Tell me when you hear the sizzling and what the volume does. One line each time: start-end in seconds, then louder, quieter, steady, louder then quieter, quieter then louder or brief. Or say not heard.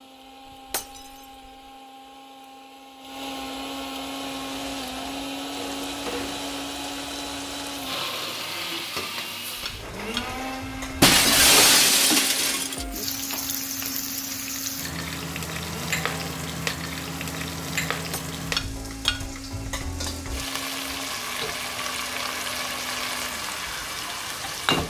4.0-24.8 louder.